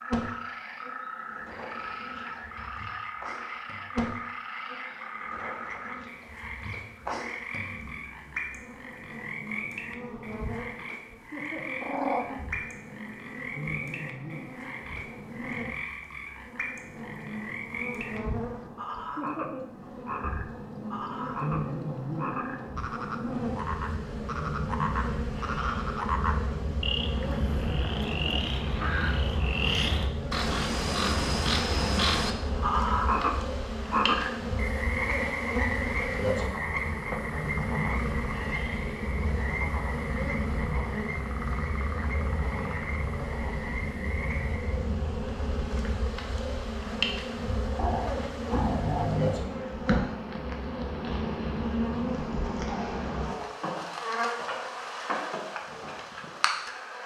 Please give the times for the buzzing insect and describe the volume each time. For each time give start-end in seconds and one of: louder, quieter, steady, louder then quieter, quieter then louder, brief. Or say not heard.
0.0-57.0 louder.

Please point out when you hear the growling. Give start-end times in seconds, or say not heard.
11.8-12.4, 27.1-29.2, 47.8-49.4.